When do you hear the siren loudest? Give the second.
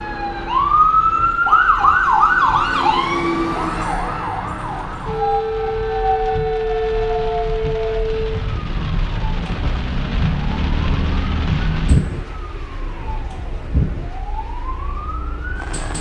2 s.